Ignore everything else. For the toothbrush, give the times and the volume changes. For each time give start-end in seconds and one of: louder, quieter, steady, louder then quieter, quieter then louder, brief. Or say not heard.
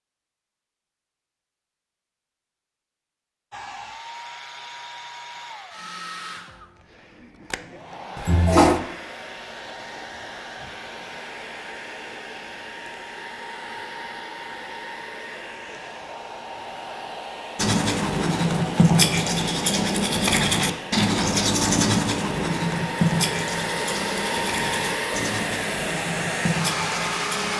17.6-27.5 quieter.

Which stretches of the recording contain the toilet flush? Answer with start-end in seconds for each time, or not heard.
8.2-8.8.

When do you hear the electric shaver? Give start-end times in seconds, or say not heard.
not heard.